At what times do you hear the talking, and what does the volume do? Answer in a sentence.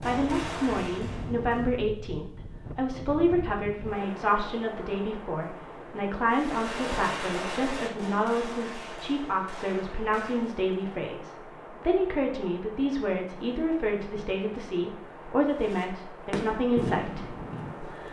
You can hear the talking from 0.0 to 18.0 s, at a steady volume.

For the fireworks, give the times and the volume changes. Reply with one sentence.
The fireworks can be heard briefly from 0.0 to 1.8 s; from 6.2 to 10.6 s, getting quieter; and briefly from 15.5 to 18.0 s.